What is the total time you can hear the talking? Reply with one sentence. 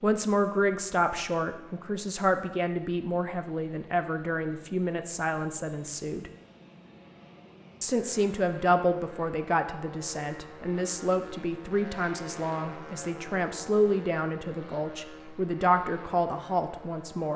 The talking can be heard for 16 seconds in total.